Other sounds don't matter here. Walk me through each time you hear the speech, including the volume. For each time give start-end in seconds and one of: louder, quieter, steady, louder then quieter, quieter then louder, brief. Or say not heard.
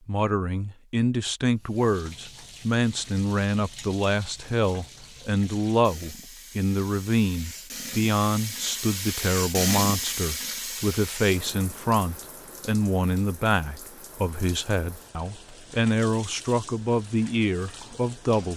0.1-18.5 steady.